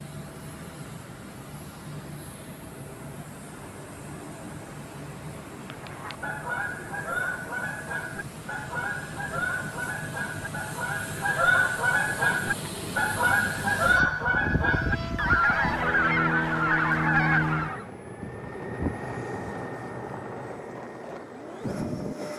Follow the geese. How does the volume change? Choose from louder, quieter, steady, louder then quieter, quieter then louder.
louder.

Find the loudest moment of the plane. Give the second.
17 s.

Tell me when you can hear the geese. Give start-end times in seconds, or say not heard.
5.6-17.9.